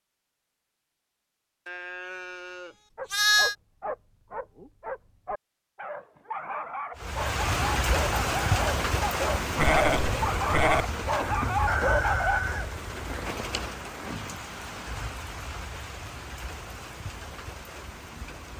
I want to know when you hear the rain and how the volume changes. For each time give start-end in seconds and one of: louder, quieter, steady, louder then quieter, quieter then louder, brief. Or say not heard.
7.0-18.5 quieter.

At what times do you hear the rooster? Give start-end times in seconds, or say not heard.
11.7-13.2.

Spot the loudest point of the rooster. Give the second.
12 s.